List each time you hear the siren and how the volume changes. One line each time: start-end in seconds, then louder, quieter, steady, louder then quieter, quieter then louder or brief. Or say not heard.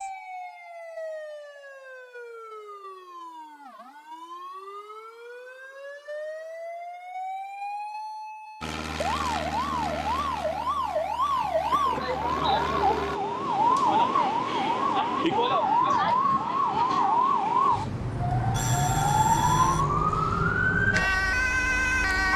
0.0-22.3 louder.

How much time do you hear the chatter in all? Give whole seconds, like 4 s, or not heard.
not heard.